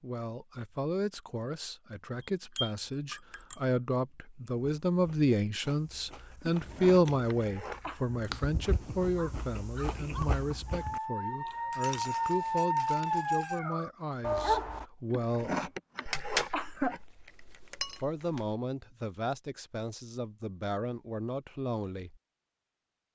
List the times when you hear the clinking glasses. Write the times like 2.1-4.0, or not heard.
2.5-3.6, 11.7-13.6, 16.1-18.6.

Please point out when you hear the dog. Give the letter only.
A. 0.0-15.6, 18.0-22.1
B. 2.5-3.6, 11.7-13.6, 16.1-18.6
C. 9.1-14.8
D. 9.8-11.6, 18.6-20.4
C.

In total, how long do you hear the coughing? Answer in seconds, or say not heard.
4 s.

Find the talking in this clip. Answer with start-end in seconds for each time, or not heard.
0.0-15.6, 18.0-22.1.